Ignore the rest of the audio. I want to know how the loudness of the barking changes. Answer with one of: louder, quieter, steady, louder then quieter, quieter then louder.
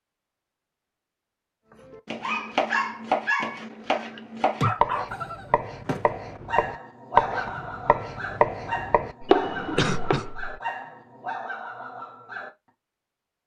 quieter.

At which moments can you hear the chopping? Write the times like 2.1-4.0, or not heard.
1.8-10.2.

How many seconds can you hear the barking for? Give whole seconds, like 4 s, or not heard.
10 s.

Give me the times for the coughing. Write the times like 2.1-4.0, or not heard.
9.2-10.6.